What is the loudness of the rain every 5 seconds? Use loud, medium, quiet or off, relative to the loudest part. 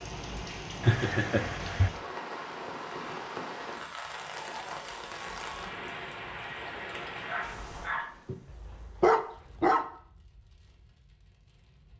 loud, loud, quiet.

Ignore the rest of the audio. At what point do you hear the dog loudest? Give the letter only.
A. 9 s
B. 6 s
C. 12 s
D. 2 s
A.